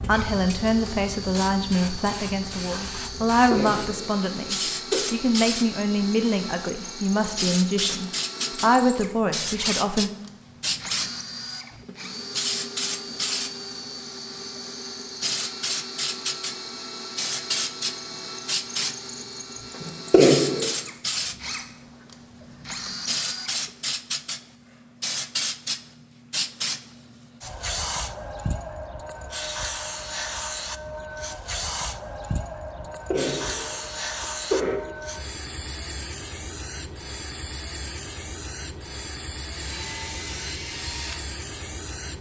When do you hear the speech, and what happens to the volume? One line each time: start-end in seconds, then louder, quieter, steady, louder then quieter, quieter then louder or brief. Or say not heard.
0.0-10.1 steady.